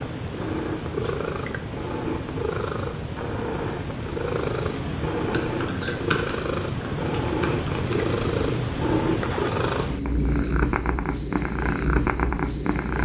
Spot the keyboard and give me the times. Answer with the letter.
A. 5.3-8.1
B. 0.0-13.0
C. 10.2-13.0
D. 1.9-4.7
A.